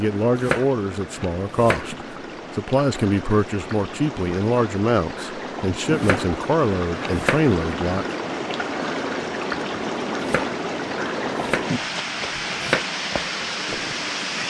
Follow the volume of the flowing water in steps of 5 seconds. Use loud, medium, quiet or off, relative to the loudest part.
medium, loud, loud.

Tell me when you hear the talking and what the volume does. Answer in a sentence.
The talking can be heard from 0.0 to 8.1 s, at a steady volume.